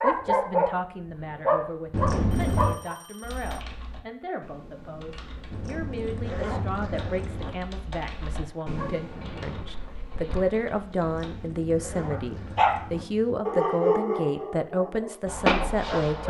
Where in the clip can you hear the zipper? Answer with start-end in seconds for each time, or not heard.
1.9-2.8, 5.5-7.5, 11.0-13.1.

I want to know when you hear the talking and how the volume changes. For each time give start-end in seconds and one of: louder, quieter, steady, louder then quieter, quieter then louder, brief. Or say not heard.
0.0-16.2 louder.